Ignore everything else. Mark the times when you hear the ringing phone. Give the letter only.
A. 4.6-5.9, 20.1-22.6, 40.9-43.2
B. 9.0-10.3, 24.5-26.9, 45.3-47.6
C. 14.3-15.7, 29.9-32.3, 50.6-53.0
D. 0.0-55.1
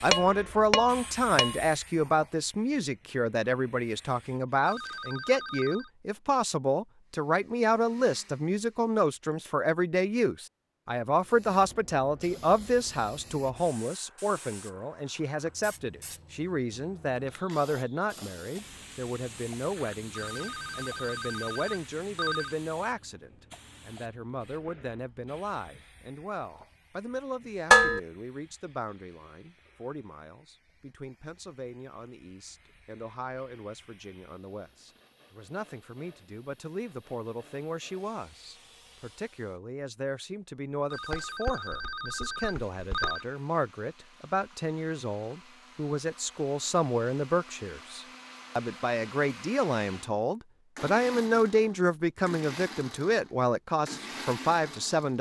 A.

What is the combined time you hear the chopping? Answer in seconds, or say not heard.
not heard.